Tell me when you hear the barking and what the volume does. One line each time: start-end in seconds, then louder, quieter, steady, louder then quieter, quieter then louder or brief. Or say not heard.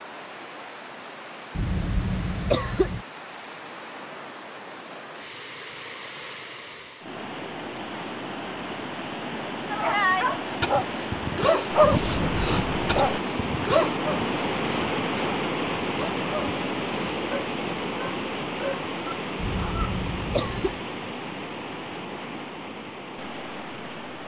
9.7-20.0 quieter.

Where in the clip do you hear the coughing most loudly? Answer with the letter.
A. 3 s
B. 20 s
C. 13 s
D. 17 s
A.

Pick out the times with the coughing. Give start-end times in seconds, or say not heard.
1.6-3.0, 12.0-13.2, 19.4-20.8.